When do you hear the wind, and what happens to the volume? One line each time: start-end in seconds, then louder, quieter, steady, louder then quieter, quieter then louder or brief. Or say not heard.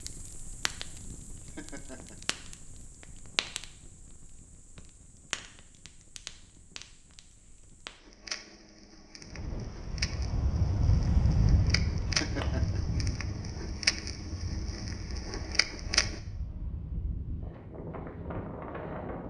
9.2-19.2 quieter then louder.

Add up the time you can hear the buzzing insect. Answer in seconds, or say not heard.
not heard.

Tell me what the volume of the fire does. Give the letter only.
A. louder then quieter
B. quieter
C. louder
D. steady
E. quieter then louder
C.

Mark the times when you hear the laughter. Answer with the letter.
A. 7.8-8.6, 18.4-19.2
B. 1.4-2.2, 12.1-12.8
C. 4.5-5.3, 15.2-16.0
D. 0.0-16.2
B.